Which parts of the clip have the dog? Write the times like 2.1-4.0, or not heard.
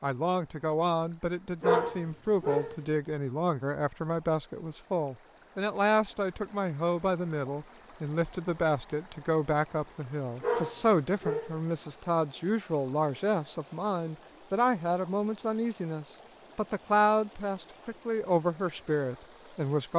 1.6-2.8, 10.4-11.6.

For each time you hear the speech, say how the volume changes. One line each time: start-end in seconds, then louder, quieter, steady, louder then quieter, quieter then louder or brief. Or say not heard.
0.0-19.9 steady.